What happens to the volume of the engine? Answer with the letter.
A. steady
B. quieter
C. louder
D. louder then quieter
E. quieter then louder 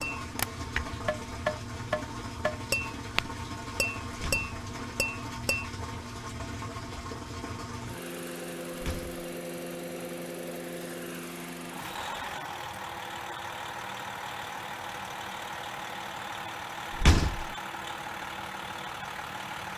A.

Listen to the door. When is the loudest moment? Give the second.
17 s.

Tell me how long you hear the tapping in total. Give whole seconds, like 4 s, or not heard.
6 s.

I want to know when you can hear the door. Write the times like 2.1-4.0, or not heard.
4.1-4.6, 8.8-9.2, 16.9-17.5.